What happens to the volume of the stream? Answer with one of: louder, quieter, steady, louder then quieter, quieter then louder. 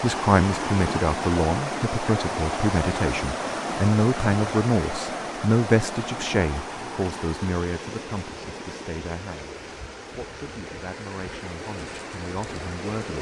quieter.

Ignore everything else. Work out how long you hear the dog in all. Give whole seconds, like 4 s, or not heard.
not heard.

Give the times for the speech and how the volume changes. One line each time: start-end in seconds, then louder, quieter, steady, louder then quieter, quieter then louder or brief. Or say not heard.
0.0-13.1 quieter.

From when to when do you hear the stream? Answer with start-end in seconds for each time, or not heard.
0.0-13.1.